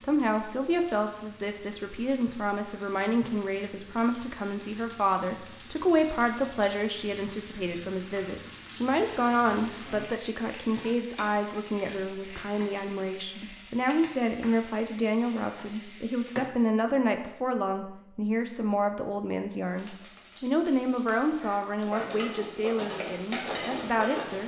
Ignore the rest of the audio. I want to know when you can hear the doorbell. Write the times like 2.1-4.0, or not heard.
not heard.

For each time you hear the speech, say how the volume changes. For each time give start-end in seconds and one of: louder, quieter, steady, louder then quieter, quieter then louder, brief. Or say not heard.
0.0-24.4 steady.